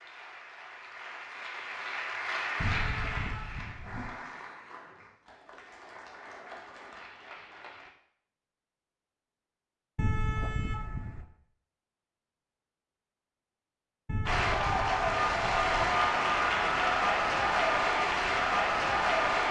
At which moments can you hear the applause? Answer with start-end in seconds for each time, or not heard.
0.0-7.9, 14.2-19.4.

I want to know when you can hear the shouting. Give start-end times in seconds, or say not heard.
not heard.